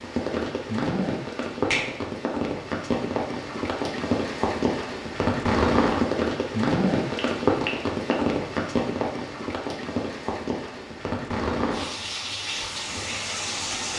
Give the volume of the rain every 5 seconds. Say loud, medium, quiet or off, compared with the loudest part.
loud, loud, medium.